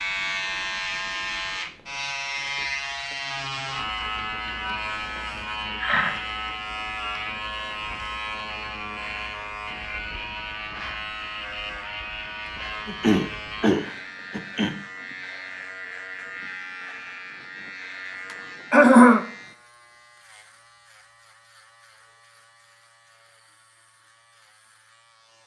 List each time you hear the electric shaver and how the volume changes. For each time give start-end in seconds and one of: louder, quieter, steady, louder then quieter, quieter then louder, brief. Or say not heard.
0.0-25.4 quieter.